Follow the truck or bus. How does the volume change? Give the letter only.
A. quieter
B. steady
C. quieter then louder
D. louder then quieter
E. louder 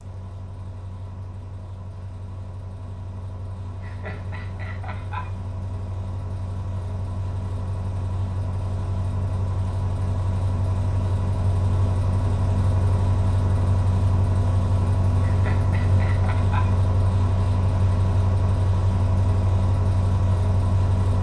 E.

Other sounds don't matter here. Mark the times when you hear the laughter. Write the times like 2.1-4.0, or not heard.
3.8-5.3, 15.2-16.9.